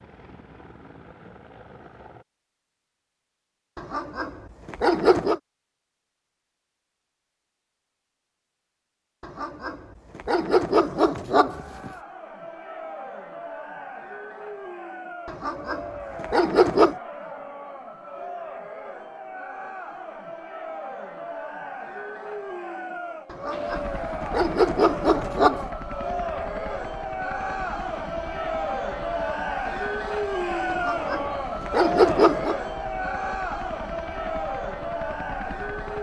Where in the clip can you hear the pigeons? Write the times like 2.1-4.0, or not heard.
not heard.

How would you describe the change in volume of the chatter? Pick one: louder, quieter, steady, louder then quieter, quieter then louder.
louder.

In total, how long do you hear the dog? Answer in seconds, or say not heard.
10 s.